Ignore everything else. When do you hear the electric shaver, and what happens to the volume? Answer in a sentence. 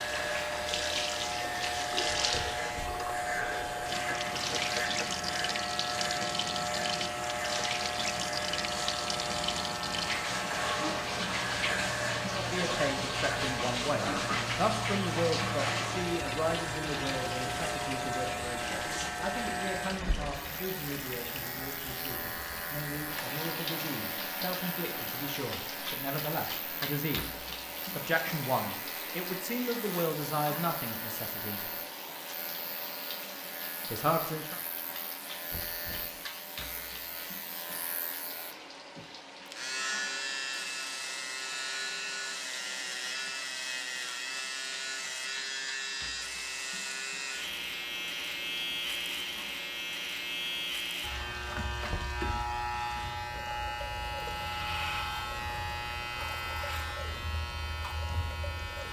You can hear the electric shaver from 0.0 to 58.8 s, getting quieter then louder.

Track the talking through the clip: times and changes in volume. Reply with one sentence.
The talking can be heard from 12.2 to 31.7 s, getting quieter then louder; and briefly from 33.9 to 34.6 s.